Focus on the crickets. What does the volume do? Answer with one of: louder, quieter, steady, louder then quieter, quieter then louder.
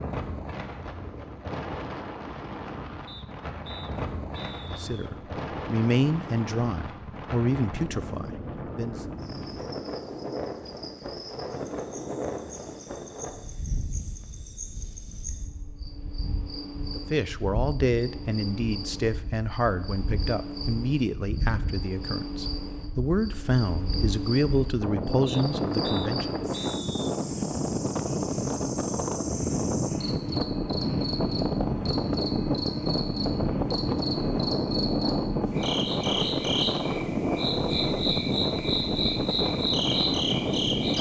louder.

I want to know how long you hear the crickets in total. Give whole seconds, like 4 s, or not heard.
32 s.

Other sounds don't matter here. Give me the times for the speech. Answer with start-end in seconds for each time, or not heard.
4.7-8.9, 16.9-26.4.